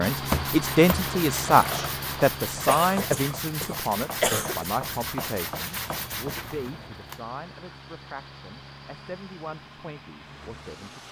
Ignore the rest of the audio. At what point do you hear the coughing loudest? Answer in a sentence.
The volume of the coughing peaks at 4 seconds.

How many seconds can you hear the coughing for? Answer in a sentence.
You can hear the coughing for 2 seconds altogether.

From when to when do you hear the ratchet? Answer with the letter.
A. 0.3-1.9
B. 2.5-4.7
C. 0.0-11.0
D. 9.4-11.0
A.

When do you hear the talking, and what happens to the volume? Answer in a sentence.
You can hear the talking from 0.0 to 11.0 s, getting quieter.